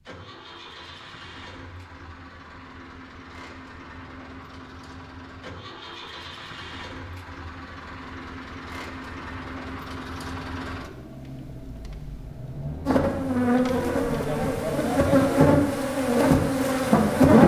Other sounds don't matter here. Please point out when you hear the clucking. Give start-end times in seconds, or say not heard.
not heard.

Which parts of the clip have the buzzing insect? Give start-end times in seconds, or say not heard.
12.8-17.4.